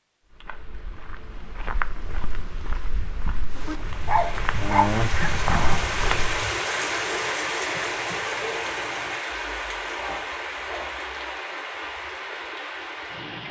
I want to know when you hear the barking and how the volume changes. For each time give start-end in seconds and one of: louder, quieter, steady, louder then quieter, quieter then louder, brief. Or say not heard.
3.5-11.2 quieter.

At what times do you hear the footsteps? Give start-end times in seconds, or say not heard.
0.3-6.3.